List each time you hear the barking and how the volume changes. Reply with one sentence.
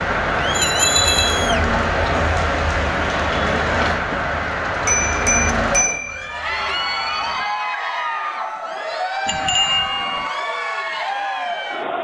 You can't hear the barking here.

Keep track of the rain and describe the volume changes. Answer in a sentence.
The loudness of the rain goes down.